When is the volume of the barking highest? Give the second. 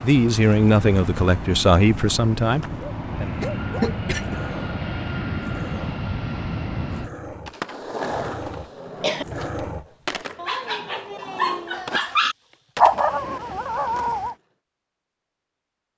13 s.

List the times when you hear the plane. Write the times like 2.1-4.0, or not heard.
0.0-7.1.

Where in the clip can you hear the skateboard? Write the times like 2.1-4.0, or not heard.
7.5-14.2.